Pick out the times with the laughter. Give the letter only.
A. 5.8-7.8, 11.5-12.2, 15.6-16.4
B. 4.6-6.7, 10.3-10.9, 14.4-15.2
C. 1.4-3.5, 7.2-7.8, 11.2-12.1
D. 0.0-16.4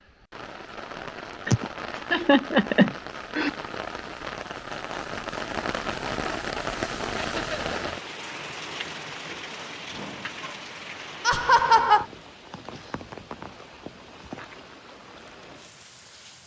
C.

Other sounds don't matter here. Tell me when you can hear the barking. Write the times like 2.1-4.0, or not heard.
not heard.